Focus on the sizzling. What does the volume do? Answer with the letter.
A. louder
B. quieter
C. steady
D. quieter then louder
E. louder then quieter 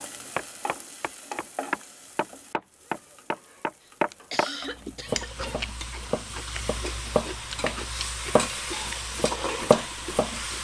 D.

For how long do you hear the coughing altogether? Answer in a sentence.
You can hear the coughing for 2 seconds altogether.